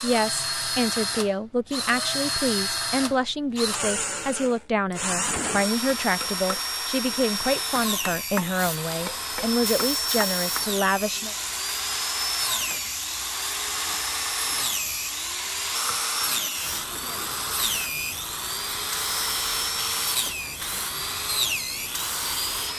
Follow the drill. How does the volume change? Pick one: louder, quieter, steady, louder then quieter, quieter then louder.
steady.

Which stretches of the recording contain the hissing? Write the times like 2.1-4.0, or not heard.
8.6-22.7.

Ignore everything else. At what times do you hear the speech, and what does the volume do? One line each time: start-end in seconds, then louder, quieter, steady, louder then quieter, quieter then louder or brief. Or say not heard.
0.0-11.3 steady.